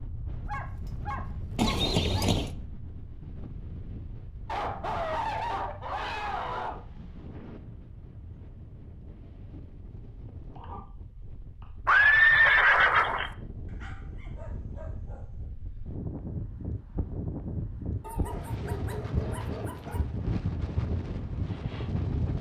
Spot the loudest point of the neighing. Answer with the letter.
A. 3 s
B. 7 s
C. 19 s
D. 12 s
D.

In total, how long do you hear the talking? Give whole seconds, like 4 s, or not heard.
not heard.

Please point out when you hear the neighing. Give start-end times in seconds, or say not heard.
1.6-2.5, 11.8-13.3.